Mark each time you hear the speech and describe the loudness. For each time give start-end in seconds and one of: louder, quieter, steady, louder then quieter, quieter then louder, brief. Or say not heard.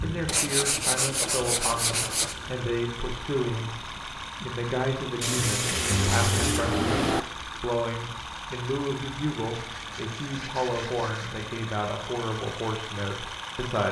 0.0-13.8 steady.